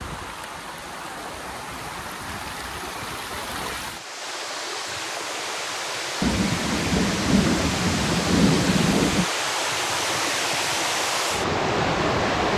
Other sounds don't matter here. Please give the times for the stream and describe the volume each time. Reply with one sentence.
The stream can be heard from 0.0 to 12.5 s, getting louder.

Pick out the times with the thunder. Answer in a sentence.
The thunder can be heard from 6.2 to 9.3 s.